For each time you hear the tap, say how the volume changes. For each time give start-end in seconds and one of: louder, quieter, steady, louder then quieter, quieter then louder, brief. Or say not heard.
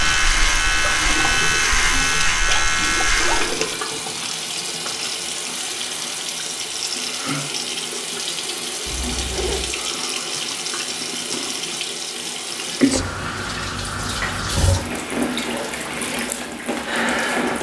0.0-17.5 steady.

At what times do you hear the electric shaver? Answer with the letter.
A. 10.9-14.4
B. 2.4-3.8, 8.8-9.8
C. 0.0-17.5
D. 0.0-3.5
D.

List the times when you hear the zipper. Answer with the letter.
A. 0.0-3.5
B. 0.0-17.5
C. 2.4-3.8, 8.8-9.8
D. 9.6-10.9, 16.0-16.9
C.